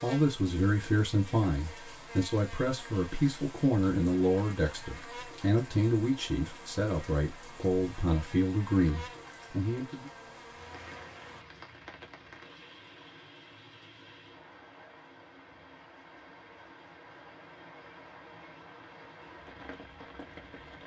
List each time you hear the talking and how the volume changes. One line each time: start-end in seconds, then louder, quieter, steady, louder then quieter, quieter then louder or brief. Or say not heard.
0.0-10.1 steady.